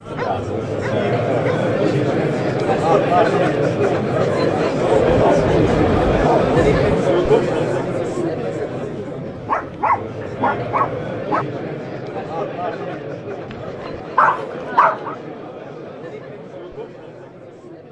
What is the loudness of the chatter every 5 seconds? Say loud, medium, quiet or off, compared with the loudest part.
loud, loud, medium, quiet.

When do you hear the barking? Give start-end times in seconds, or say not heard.
0.1-1.6, 5.0-7.0, 9.3-11.4, 13.5-15.2.